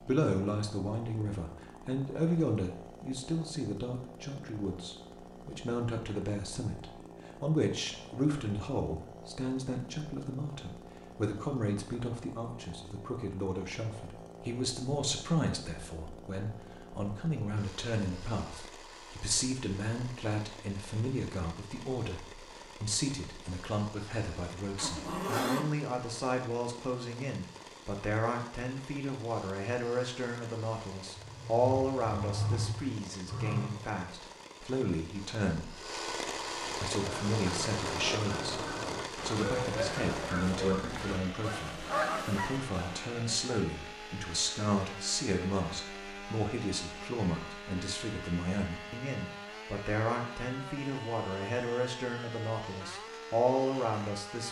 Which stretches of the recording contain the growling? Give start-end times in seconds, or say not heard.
24.8-25.6, 31.1-33.8.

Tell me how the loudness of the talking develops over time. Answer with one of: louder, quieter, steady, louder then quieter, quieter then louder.
steady.